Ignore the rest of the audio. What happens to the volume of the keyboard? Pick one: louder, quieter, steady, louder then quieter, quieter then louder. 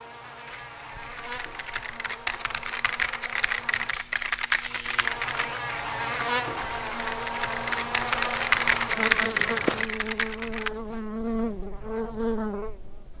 louder.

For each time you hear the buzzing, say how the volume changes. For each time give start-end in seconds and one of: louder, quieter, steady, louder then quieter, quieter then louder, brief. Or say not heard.
0.0-13.1 louder.